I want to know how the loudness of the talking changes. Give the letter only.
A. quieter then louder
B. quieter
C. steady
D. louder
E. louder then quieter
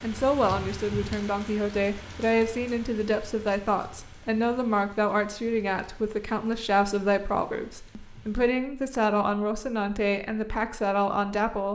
C.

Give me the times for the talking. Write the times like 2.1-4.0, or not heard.
0.0-11.6.